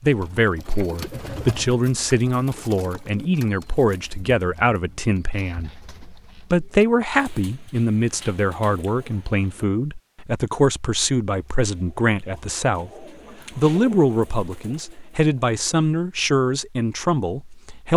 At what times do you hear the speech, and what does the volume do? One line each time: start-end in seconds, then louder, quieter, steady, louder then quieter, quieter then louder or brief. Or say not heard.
0.0-17.9 steady.